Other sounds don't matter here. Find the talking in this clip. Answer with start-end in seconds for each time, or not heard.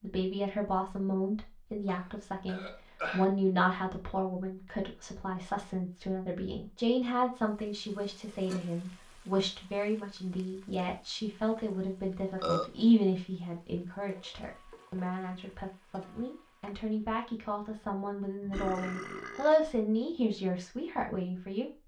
0.0-21.8.